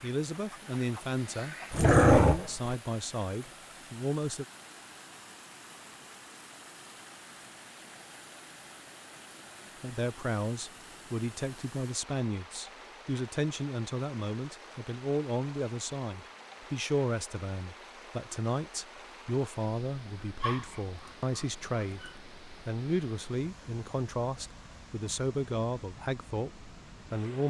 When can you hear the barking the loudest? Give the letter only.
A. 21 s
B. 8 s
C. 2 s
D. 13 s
C.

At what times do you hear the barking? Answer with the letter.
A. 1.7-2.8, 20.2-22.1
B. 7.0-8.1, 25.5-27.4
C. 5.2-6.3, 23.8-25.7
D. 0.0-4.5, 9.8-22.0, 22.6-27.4
A.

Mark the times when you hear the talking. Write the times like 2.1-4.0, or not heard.
0.0-4.5, 9.8-22.0, 22.6-27.4.